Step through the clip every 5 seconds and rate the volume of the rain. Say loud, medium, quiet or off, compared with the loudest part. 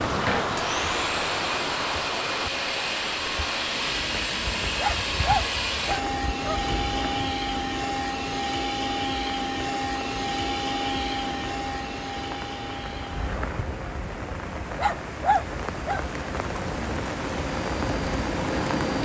loud, medium, medium, loud.